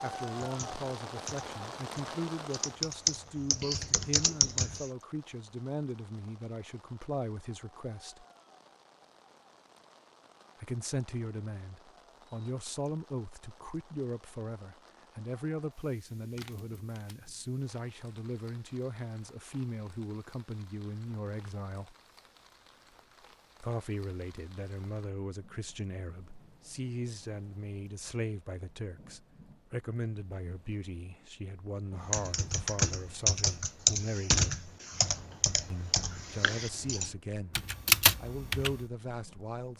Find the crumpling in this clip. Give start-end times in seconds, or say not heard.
16.4-17.2.